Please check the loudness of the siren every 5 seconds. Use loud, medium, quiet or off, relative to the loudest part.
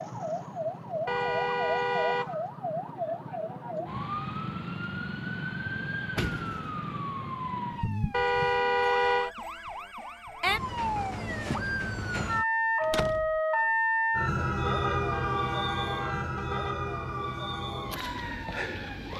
medium, medium, loud, medium.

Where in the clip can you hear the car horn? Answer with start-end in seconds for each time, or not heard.
1.1-2.4, 8.1-9.3, 14.7-16.8.